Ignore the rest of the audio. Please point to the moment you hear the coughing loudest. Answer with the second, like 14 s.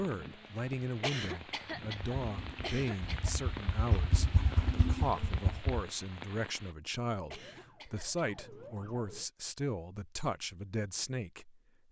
1 s.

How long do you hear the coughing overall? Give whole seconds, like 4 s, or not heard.
3 s.